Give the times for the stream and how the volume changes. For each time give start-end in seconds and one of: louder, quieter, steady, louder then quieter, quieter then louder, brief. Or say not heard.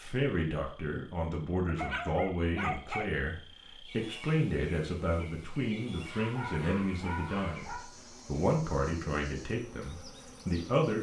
not heard.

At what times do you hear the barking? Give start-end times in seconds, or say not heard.
1.6-3.1, 6.0-7.8.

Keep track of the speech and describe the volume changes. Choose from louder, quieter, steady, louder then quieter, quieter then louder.
steady.